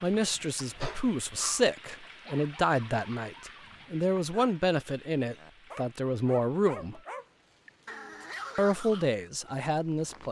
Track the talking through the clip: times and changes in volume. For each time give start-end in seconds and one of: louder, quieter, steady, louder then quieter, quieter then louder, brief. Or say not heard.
0.0-7.0 steady
8.6-10.2 brief.